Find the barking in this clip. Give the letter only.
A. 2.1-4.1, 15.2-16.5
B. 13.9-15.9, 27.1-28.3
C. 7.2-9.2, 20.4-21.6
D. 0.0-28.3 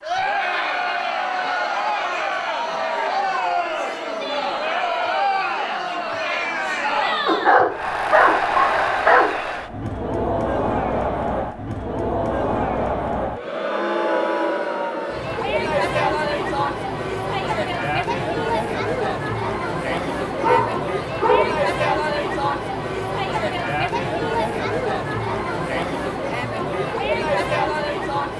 C.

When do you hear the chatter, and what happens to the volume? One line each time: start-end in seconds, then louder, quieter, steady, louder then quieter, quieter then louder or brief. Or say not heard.
0.0-28.3 steady.